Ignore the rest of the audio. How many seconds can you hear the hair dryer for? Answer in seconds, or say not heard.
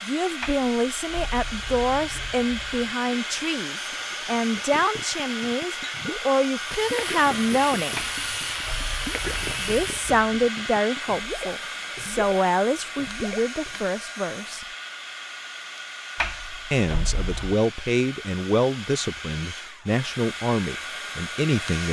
22 s.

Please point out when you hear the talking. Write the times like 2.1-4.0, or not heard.
0.0-8.0, 9.6-14.7, 16.7-21.8.